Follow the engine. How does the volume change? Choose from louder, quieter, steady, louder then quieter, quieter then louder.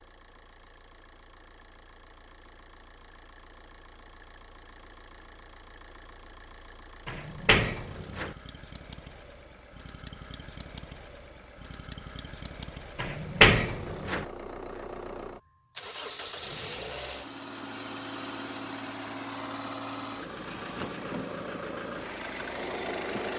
louder.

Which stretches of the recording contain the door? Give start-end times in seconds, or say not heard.
7.0-8.3, 12.9-14.2.